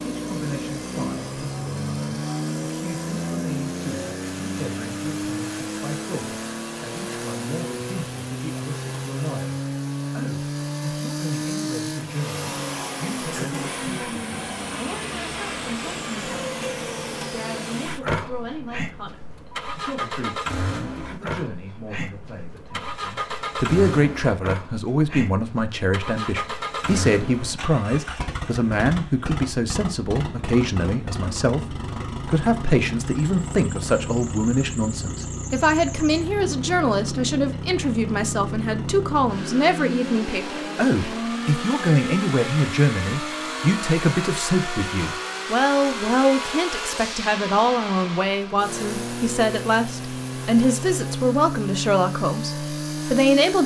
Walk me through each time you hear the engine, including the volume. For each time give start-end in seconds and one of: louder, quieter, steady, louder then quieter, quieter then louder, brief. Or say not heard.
0.0-53.6 steady.